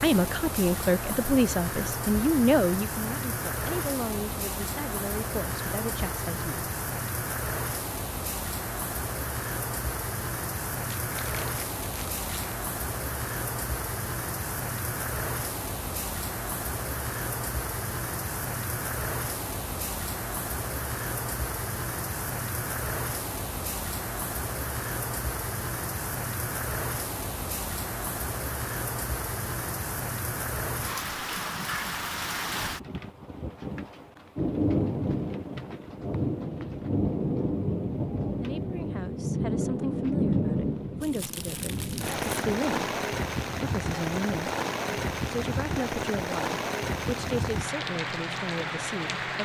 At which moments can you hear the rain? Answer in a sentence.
The rain can be heard from 0.0 to 49.4 s.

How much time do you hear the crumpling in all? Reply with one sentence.
The crumpling can be heard for 3 seconds in total.